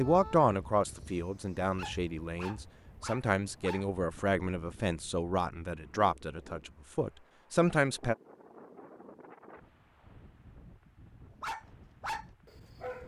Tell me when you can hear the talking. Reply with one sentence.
The talking can be heard from 0.0 to 8.2 s.